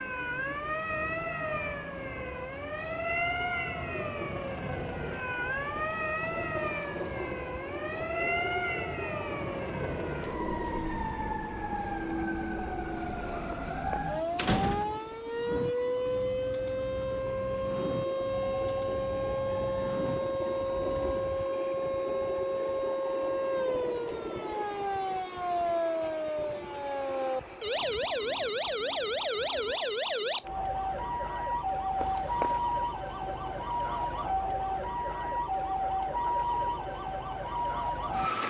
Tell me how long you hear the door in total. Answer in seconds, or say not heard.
2 s.